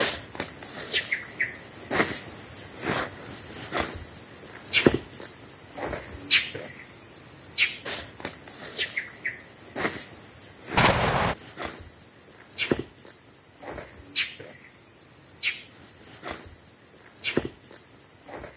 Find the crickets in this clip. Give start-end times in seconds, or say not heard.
0.0-18.5.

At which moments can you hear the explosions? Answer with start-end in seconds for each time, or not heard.
10.8-11.3.